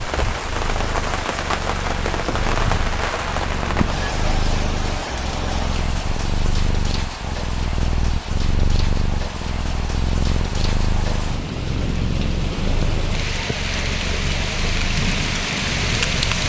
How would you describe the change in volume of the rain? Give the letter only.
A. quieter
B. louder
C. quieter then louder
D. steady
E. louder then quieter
C.